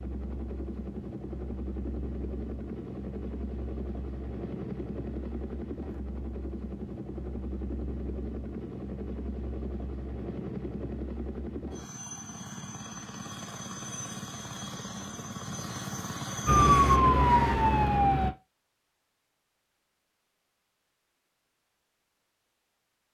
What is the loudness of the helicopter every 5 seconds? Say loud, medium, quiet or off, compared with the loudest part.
loud, loud, loud, loud, off.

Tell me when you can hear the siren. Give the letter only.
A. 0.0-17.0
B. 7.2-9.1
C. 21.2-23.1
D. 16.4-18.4
D.